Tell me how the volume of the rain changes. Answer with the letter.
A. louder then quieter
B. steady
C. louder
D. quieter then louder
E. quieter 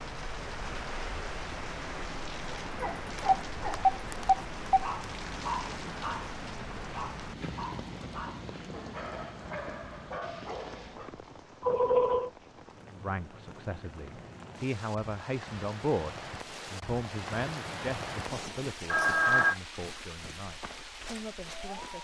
D.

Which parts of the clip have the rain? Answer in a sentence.
You can hear the rain from 0.0 to 22.0 s.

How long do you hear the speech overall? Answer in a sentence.
You can hear the speech for 9 seconds altogether.